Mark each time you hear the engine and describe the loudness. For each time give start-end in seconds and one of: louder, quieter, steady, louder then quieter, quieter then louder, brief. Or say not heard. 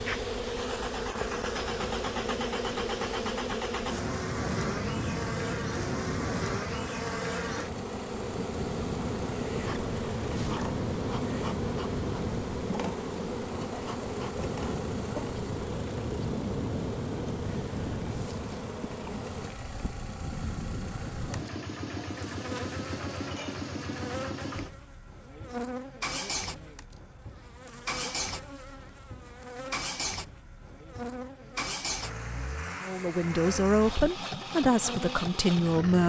0.0-36.0 steady.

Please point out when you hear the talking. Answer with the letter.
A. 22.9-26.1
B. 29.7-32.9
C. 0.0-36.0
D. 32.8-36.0
D.